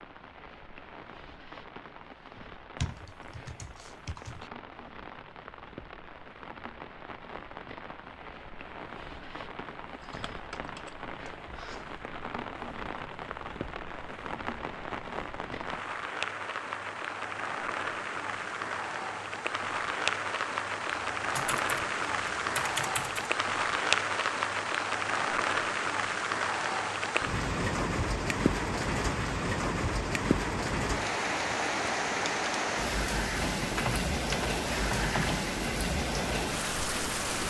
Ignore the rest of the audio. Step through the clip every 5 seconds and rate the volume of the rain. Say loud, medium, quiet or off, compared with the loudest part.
quiet, quiet, medium, medium, loud, loud, loud, loud.